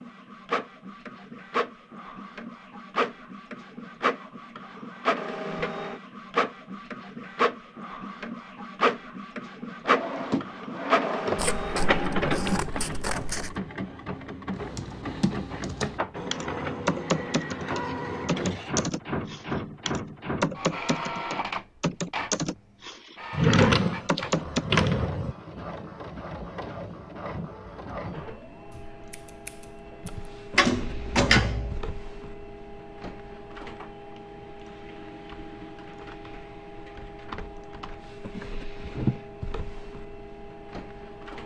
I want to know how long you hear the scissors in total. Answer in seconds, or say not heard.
3 s.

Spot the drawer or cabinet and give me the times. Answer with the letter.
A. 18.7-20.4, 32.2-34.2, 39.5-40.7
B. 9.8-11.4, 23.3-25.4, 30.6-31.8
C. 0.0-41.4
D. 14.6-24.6
B.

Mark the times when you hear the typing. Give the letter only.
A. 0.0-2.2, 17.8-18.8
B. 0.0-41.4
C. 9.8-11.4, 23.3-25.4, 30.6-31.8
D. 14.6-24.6
D.